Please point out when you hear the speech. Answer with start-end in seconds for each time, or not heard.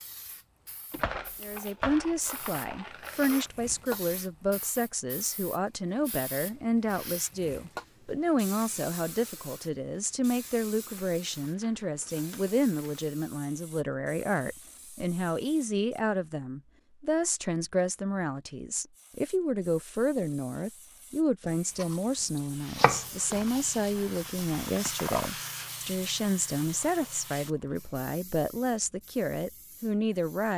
1.4-30.5.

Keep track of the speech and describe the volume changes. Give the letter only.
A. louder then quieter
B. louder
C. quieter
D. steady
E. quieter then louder
D.